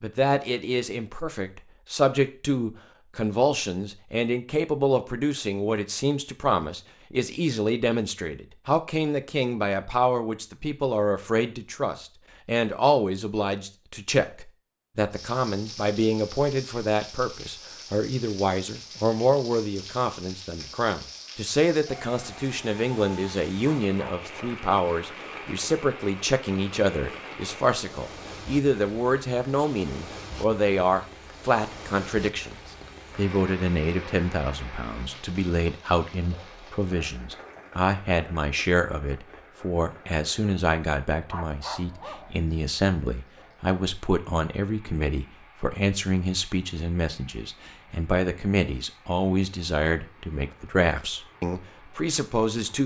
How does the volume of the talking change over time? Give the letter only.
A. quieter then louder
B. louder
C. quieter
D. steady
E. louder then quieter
D.